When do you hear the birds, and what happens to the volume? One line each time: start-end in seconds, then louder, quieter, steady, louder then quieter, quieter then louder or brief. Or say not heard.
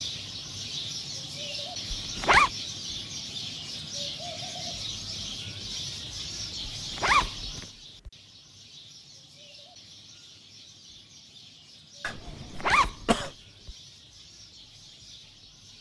0.0-15.7 quieter.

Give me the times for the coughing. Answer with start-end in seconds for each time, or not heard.
12.0-13.3.